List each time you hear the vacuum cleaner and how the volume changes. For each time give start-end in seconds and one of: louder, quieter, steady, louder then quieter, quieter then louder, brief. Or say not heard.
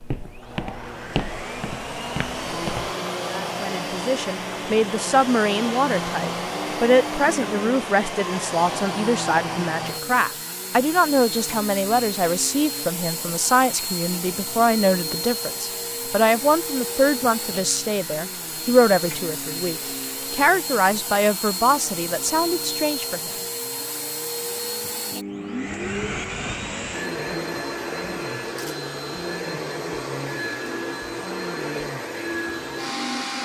0.0-33.4 steady.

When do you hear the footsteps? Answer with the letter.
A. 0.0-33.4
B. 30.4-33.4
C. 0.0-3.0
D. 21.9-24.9
C.